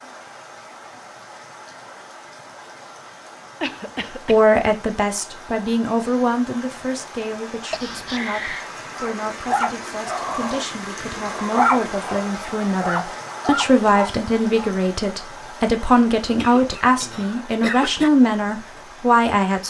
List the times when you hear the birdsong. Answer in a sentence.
You can't hear the birdsong here.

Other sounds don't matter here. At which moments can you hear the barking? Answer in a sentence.
The barking can be heard from 8.9 to 14.7 s.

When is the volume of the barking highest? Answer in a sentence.
The volume of the barking peaks at 12 seconds.